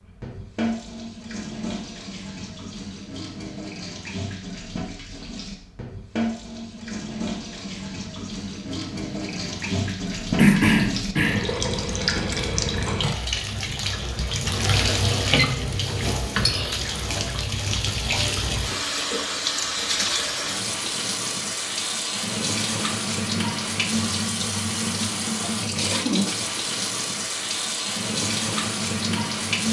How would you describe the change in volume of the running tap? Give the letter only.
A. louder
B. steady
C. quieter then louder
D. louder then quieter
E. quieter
A.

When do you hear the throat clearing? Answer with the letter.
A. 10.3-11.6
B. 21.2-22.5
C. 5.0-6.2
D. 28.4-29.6
A.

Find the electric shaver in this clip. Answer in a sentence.
The electric shaver can't be heard in this clip.